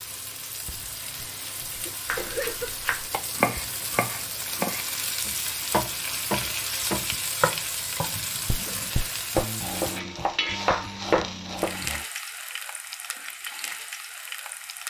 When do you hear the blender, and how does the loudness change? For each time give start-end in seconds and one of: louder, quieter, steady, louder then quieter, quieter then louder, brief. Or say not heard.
not heard.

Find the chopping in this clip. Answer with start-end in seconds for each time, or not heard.
2.0-12.1.